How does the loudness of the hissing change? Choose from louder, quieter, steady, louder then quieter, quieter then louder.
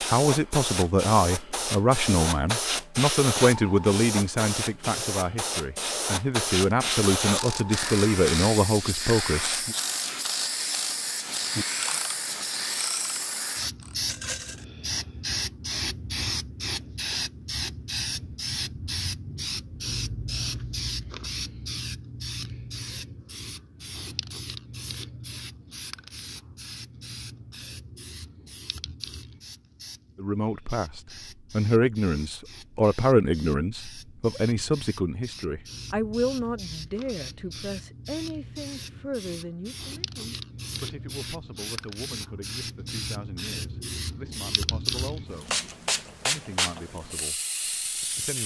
quieter then louder.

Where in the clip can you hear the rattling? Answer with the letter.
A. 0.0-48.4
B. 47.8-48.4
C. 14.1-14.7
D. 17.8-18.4
C.